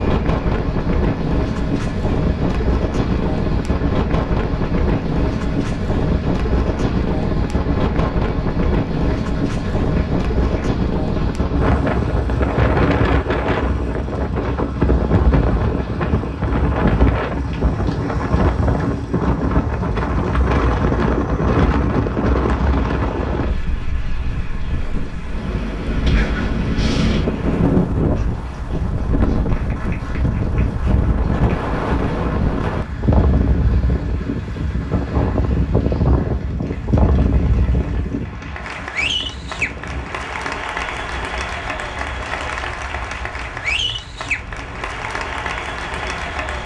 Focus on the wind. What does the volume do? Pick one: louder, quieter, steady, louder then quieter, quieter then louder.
quieter.